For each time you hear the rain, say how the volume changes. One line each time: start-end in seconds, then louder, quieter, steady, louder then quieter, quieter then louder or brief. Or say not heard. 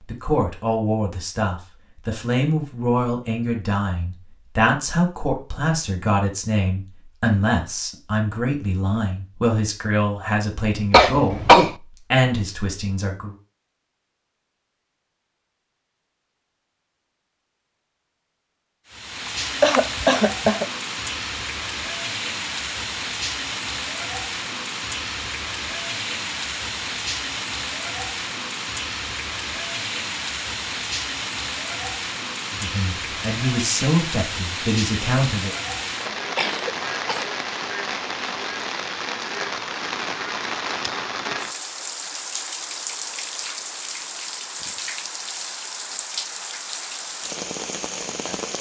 18.9-48.5 steady.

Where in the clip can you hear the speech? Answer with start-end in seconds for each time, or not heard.
0.1-13.3, 32.5-35.5.